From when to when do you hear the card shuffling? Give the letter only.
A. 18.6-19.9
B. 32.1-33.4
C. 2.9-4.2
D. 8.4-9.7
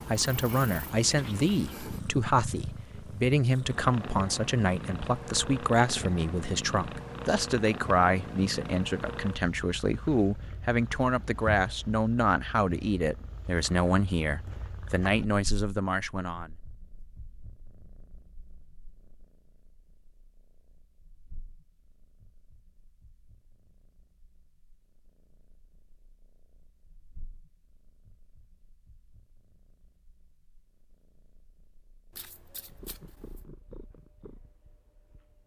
B.